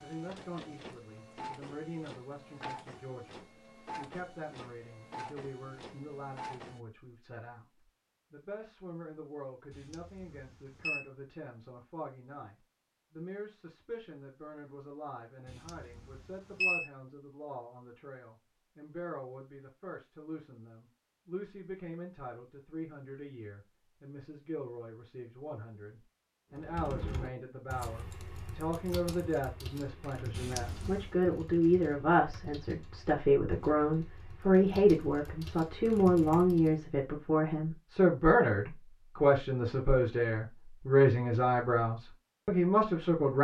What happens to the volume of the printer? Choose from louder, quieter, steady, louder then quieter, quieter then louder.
steady.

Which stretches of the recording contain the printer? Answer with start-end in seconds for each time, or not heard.
0.0-6.8.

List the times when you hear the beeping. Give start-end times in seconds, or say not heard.
9.7-11.1, 15.4-16.9, 30.3-31.1.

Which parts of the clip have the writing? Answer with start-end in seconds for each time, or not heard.
not heard.